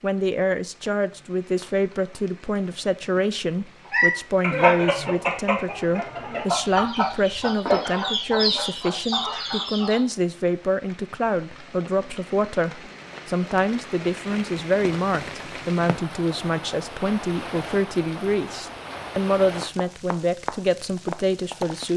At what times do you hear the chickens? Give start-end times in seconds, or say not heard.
3.9-10.0.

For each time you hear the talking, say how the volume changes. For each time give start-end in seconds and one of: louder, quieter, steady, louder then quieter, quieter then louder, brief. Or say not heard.
0.0-21.9 steady.